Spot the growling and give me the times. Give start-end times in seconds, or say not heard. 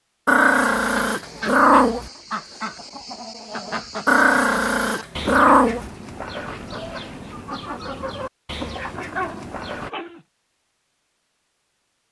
0.2-2.1, 4.0-5.9, 8.9-10.2.